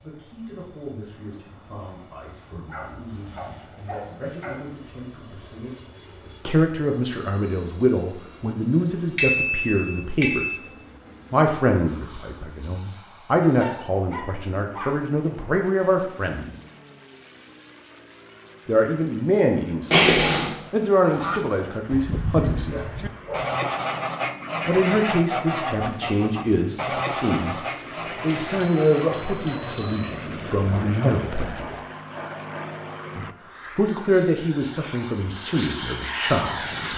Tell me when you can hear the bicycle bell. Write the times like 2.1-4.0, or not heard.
9.2-10.6, 19.9-20.5, 28.5-30.1.